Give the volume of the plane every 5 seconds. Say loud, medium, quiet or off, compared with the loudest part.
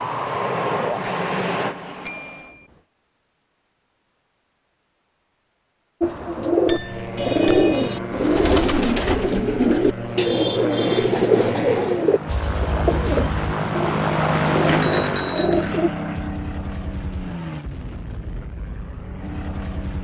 loud, medium, loud, medium.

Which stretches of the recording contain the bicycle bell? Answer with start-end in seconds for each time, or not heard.
0.8-2.6, 6.7-7.8, 14.7-15.8.